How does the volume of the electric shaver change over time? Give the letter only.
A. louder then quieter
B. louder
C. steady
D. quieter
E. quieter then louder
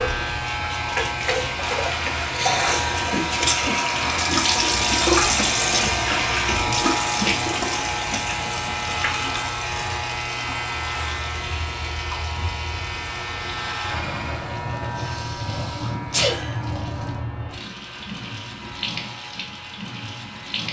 D.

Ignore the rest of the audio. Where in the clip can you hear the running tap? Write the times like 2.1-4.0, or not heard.
0.0-20.6.